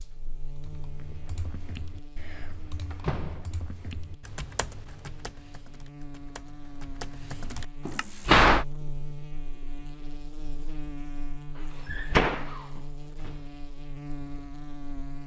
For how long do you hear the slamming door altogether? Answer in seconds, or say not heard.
3 s.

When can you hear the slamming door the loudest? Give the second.
8 s.